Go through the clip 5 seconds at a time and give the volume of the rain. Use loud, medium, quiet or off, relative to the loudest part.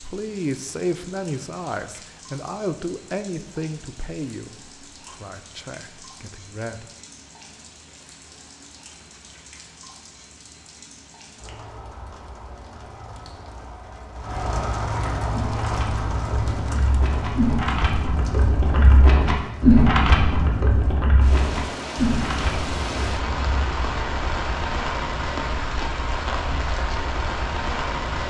quiet, quiet, medium, loud, loud, loud.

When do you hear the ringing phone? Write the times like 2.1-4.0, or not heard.
not heard.